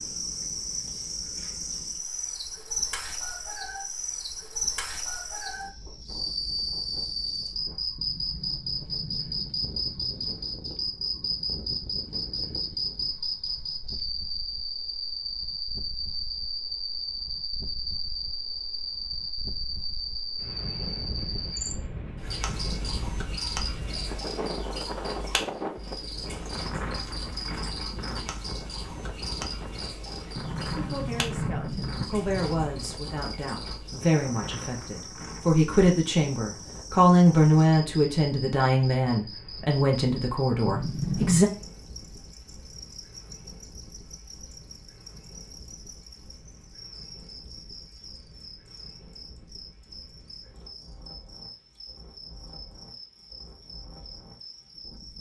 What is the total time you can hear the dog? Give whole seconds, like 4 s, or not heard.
not heard.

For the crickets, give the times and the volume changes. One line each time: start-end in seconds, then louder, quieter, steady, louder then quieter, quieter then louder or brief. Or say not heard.
0.0-55.1 quieter.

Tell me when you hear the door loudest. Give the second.
41 s.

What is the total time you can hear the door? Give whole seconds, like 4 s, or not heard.
6 s.